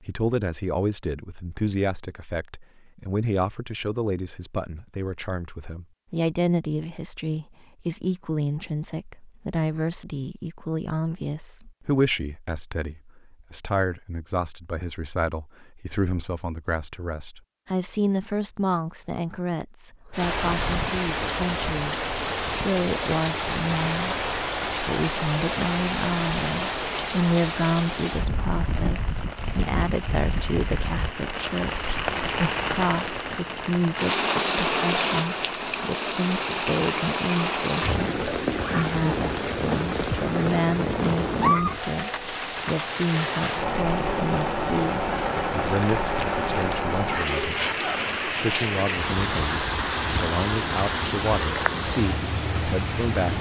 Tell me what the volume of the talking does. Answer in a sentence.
The loudness of the talking stays about the same.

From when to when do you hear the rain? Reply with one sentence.
You can hear the rain from 20.1 to 53.3 s.